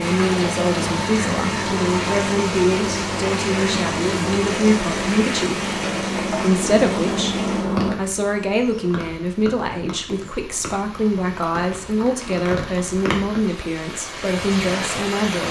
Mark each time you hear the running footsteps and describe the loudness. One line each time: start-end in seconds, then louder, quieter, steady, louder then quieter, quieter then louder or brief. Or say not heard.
not heard.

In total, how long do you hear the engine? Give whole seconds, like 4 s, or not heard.
8 s.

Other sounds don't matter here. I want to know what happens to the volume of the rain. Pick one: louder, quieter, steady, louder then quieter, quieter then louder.
quieter then louder.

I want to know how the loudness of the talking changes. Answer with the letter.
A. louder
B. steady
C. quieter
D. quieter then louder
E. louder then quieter
B.